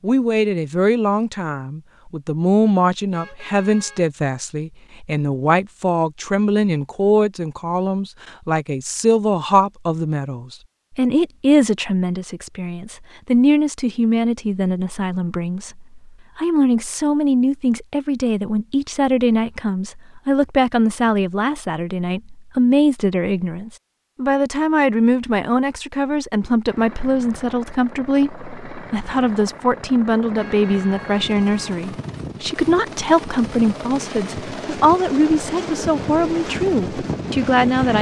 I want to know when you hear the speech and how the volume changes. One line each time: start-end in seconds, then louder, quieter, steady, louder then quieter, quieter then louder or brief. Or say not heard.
0.0-37.9 steady.